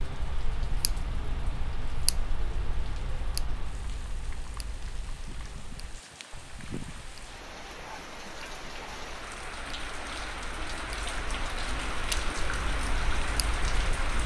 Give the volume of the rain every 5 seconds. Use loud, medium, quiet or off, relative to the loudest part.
quiet, medium, loud.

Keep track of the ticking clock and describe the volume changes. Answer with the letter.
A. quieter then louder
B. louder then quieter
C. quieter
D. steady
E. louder
A.